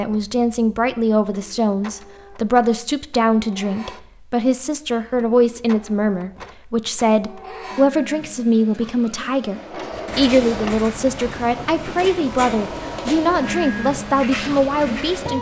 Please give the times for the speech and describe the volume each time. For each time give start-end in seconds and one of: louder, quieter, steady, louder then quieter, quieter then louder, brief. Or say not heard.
0.0-15.3 steady.